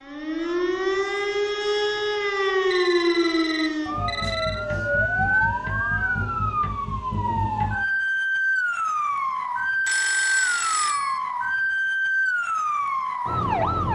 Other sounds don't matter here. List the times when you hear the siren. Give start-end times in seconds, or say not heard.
0.0-13.9.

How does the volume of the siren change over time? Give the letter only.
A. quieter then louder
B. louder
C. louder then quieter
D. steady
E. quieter
D.